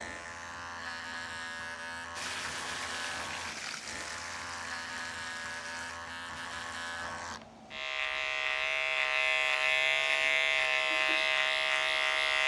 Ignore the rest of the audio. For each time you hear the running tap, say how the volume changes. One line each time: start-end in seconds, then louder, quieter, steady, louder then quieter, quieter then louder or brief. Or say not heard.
2.1-6.9 quieter.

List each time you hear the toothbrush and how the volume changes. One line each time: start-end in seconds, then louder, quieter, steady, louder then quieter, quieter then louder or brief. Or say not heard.
not heard.